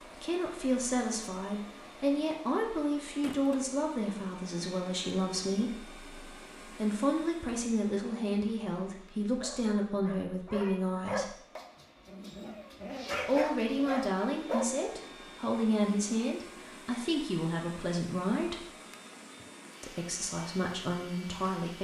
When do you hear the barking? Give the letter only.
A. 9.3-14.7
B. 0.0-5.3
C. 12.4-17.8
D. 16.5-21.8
A.